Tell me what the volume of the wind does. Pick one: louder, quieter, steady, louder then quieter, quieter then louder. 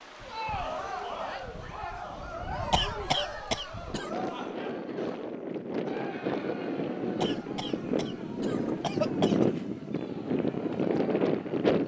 louder.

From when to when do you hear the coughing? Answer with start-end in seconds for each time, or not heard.
2.7-4.1, 7.2-9.5.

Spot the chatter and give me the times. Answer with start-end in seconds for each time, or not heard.
0.1-11.7.